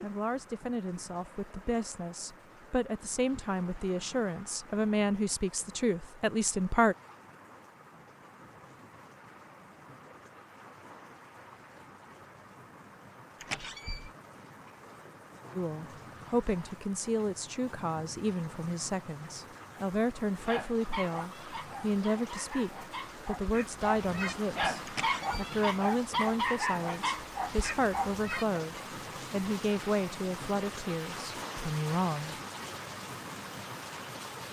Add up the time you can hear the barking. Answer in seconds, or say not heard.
8 s.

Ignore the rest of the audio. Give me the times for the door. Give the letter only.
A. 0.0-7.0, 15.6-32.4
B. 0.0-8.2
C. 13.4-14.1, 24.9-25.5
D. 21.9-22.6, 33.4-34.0
C.